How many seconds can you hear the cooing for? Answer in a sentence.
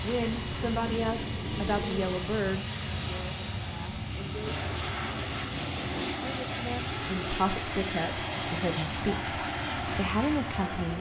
You can hear the cooing for 2 seconds altogether.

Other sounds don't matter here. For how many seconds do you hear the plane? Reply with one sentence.
You can hear the plane for 11 seconds altogether.